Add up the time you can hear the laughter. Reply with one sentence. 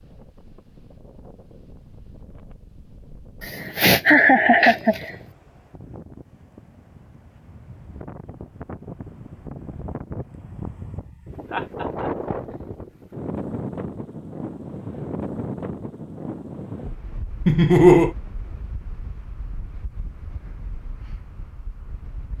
You can hear the laughter for 3 seconds altogether.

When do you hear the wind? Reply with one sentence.
The wind can be heard from 0.0 to 22.3 s.